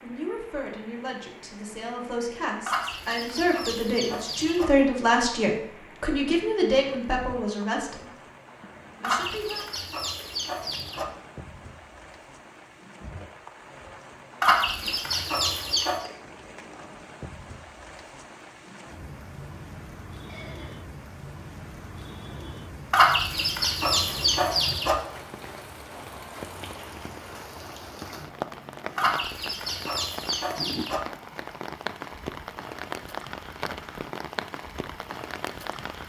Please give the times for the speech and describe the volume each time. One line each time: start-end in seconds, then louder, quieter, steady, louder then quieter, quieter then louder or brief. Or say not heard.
0.0-8.1 louder
9.0-9.7 brief.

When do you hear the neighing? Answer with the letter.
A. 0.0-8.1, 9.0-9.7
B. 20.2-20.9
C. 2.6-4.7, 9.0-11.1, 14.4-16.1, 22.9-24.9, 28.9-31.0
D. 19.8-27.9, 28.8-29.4
B.